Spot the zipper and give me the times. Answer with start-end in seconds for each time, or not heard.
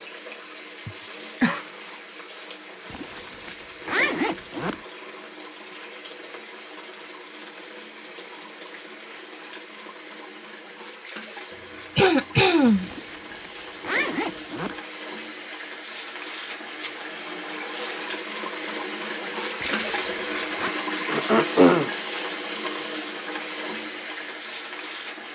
2.9-4.8, 12.8-14.8, 19.6-20.7.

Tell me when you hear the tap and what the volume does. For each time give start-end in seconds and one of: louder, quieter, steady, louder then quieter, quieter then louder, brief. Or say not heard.
0.0-25.3 louder.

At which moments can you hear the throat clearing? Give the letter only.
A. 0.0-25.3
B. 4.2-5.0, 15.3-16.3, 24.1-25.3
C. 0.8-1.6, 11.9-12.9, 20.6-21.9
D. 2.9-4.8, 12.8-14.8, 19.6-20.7
C.